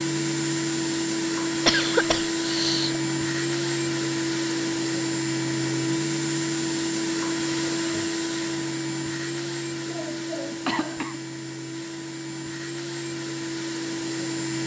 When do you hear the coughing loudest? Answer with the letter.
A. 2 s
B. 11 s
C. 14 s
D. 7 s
A.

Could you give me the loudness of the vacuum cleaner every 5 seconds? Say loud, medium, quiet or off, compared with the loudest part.
loud, loud, medium.